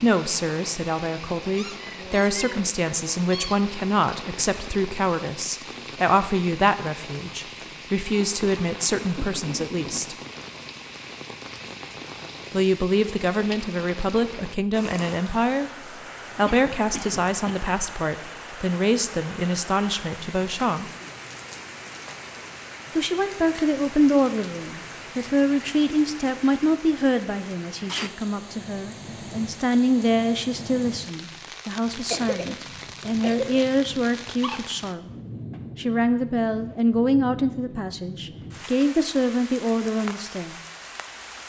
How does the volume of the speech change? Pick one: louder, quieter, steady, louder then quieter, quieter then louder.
steady.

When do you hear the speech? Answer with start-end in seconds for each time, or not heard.
0.0-10.2, 12.5-20.9, 22.9-35.1, 35.8-40.5.